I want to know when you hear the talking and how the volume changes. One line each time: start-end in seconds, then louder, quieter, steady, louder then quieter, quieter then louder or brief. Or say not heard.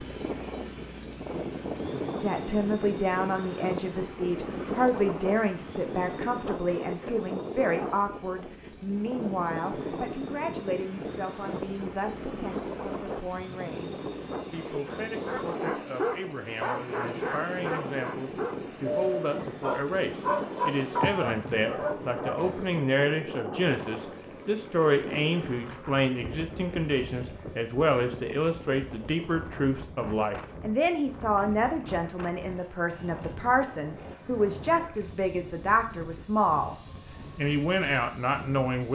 2.1-36.8 quieter then louder
37.4-38.8 brief.